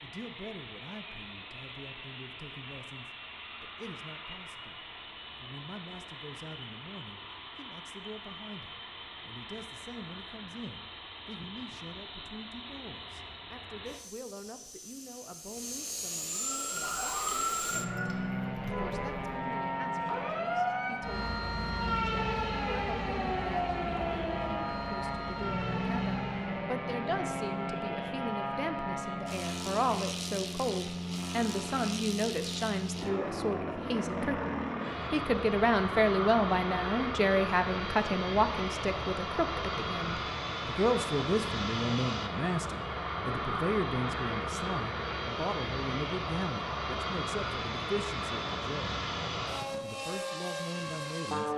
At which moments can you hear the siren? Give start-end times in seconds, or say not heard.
16.3-26.7.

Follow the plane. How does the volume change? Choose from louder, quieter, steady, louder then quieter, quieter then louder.
louder.